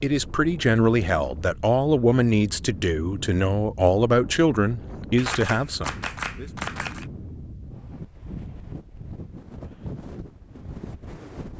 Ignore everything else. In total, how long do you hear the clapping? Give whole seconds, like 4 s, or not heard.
2 s.